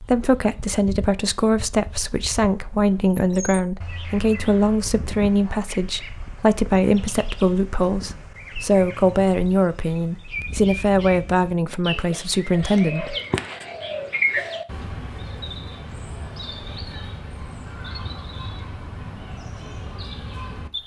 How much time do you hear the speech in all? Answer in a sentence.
The speech can be heard for 13 seconds in total.